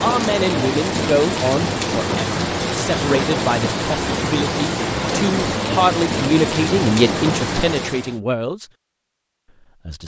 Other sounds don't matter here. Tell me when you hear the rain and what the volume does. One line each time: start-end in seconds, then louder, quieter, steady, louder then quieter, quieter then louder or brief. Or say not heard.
0.0-8.2 steady.